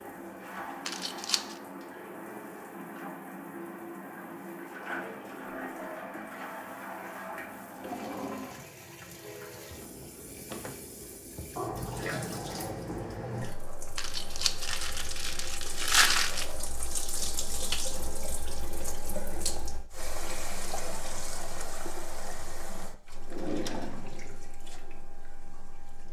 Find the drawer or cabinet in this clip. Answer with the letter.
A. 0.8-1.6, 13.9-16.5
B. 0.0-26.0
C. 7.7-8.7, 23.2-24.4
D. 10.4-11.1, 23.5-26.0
C.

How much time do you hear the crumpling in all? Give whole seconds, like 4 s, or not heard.
3 s.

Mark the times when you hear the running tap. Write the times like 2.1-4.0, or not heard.
0.0-26.0.